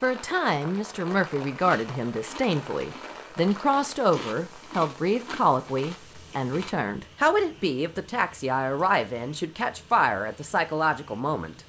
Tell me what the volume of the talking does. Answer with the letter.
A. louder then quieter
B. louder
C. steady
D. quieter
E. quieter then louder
C.